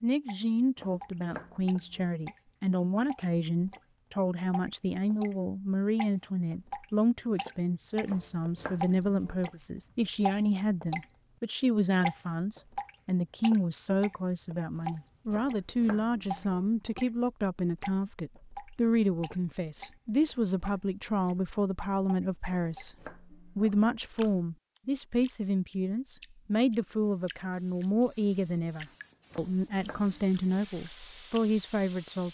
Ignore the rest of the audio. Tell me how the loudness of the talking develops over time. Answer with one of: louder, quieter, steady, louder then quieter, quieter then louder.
steady.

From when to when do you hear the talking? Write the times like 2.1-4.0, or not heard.
0.0-32.2.